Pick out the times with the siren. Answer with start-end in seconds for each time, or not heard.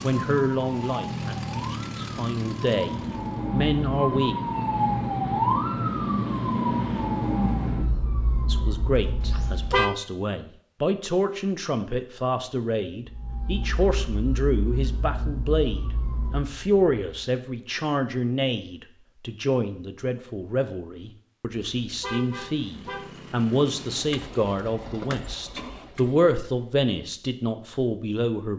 0.0-9.8, 13.1-17.4.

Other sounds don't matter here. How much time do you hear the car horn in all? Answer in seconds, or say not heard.
2 s.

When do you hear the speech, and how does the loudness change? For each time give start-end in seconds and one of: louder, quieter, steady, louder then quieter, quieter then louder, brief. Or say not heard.
0.0-4.3 quieter then louder
8.4-28.5 steady.